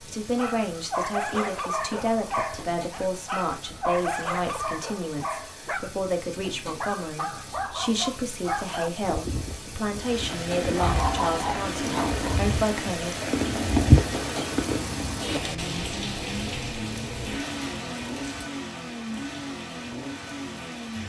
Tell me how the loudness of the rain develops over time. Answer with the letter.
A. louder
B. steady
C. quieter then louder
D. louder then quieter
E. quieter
D.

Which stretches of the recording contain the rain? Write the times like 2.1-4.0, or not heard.
9.9-21.0.